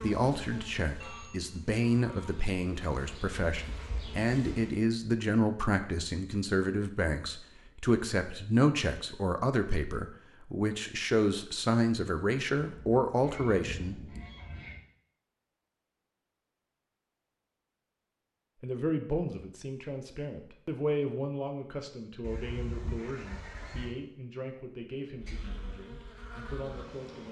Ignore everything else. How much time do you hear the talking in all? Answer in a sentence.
The talking can be heard for 23 seconds in total.